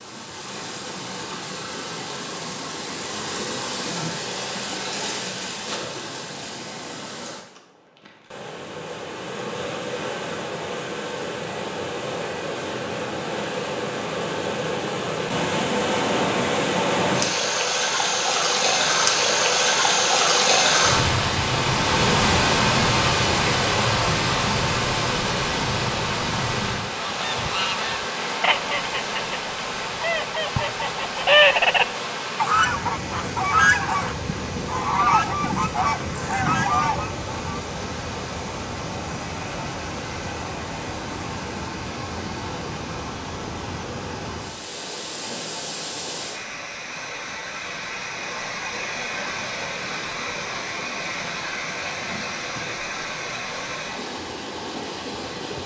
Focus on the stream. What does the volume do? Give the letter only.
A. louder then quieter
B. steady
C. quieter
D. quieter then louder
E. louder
A.